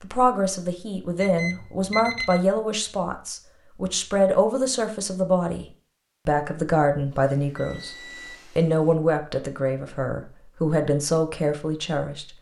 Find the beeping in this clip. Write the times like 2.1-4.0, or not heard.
1.2-2.4, 7.1-8.4.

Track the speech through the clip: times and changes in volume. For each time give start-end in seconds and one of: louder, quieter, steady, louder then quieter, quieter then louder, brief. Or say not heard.
0.0-5.7 steady
6.2-12.3 steady.